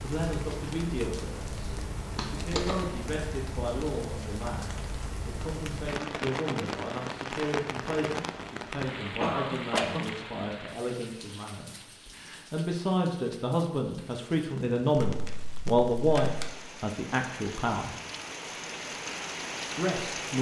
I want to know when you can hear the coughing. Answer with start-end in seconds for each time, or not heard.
9.2-10.2.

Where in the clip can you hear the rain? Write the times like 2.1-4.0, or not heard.
0.0-20.3.